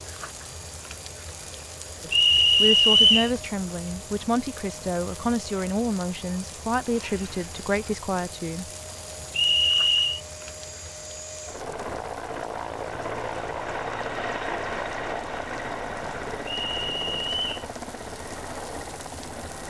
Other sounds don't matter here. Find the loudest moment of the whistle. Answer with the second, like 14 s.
3 s.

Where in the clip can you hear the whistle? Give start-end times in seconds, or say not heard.
2.1-3.3, 9.3-10.2, 16.4-17.6.